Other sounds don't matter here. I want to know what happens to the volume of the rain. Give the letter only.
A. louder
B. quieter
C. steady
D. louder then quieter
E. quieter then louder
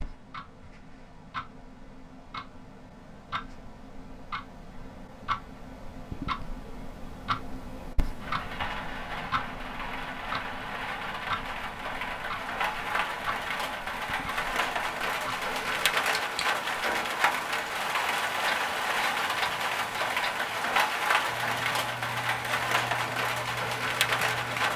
A.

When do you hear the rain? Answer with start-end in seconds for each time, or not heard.
8.2-24.7.